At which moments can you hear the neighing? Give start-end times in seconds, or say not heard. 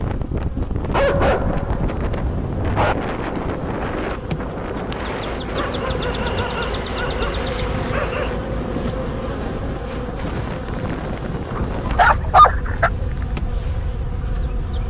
not heard.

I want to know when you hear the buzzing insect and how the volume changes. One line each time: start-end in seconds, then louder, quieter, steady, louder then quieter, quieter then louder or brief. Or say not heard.
0.0-14.8 louder then quieter.